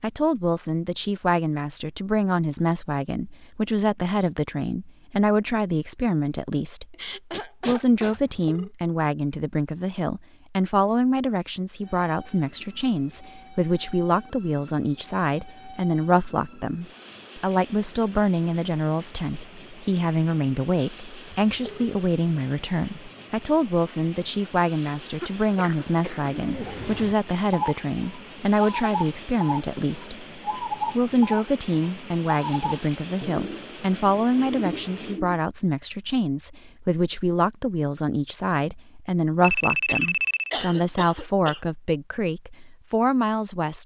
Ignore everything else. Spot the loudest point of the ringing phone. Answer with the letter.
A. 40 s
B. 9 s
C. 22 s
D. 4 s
A.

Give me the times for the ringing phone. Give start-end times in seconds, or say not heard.
8.1-8.7, 21.4-22.0, 39.4-40.5.